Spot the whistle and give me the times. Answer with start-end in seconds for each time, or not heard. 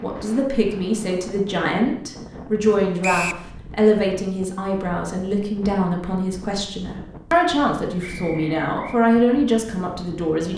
3.0-3.5, 8.0-9.0.